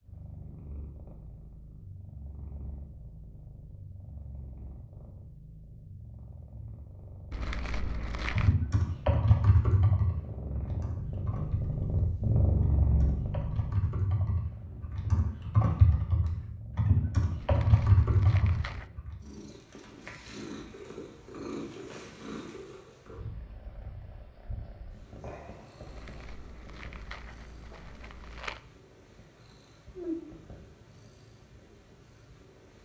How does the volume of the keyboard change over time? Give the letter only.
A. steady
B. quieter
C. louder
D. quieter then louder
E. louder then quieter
D.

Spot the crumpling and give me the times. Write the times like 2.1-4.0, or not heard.
7.3-8.6, 17.4-18.9, 25.9-28.6.